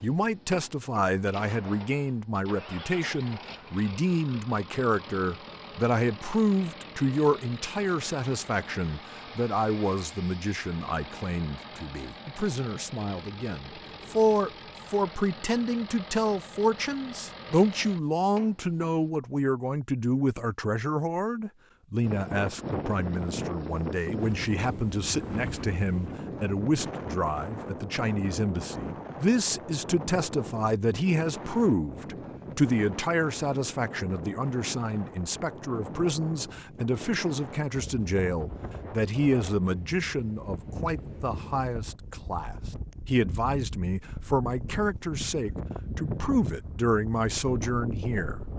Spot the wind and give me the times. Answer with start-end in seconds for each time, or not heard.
22.0-48.5.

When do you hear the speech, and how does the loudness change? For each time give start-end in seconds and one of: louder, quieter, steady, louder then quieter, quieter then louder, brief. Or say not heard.
0.0-48.4 steady.